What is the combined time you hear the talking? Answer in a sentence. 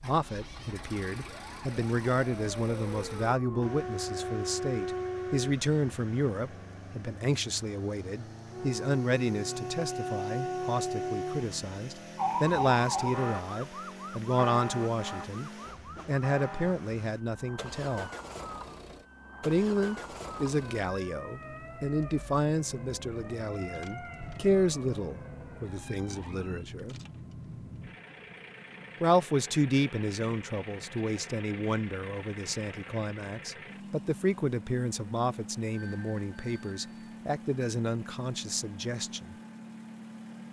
You can hear the talking for 36 seconds altogether.